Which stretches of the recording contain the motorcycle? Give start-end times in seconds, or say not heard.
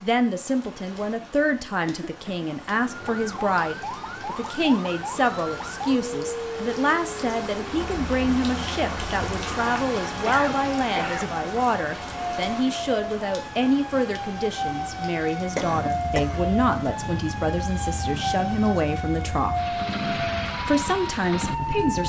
15.6-22.0.